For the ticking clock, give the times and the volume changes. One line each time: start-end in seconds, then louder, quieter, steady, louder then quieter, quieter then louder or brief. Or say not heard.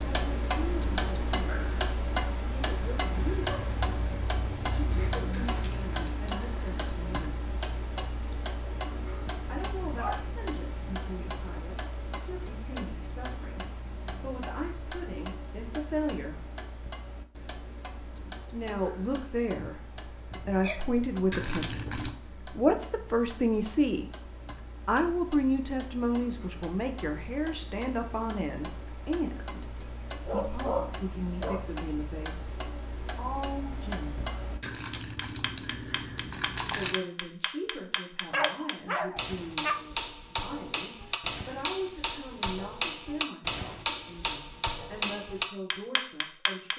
0.0-46.7 quieter then louder.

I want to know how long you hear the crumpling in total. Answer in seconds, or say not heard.
5 s.